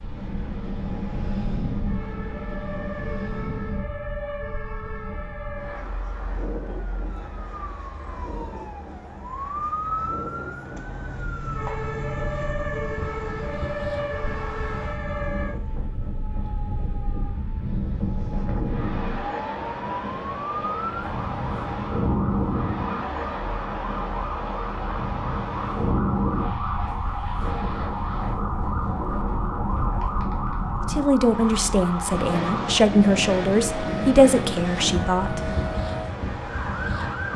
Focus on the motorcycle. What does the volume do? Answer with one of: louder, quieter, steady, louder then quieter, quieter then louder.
louder then quieter.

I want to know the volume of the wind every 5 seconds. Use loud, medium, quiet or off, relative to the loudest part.
loud, medium, medium, loud, loud, loud, loud, loud.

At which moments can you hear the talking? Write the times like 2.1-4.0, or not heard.
30.9-35.5.